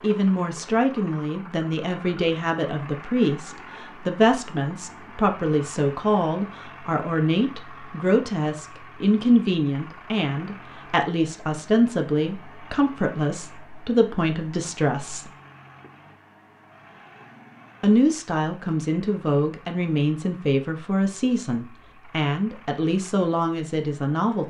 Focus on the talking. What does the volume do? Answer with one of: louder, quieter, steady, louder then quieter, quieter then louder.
steady.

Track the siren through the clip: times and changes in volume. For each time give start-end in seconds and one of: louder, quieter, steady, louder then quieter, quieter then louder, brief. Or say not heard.
not heard.